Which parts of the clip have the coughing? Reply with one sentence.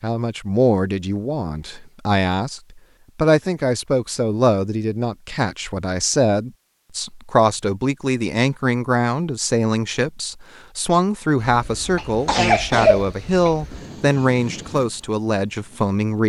The coughing can be heard from 11.9 to 13.5 s.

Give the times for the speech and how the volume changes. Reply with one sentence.
The speech can be heard from 0.0 to 16.2 s, at a steady volume.